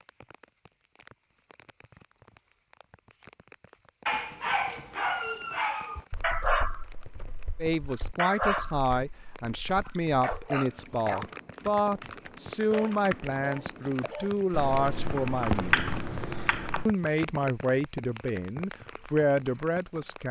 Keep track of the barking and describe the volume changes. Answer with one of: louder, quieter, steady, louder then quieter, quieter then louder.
quieter.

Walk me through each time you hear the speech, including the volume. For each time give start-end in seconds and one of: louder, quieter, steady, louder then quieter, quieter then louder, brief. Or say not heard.
7.6-20.2 steady.